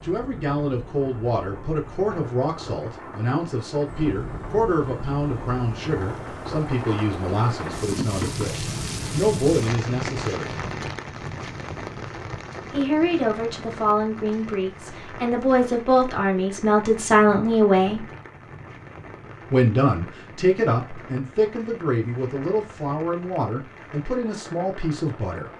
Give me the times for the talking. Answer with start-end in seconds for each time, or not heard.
0.0-10.6, 12.7-18.1, 19.5-25.5.